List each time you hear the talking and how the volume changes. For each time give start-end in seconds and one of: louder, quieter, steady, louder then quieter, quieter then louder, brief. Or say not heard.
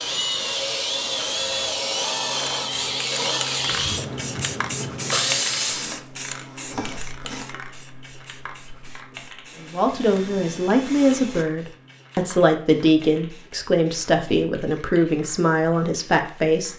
9.6-16.7 steady.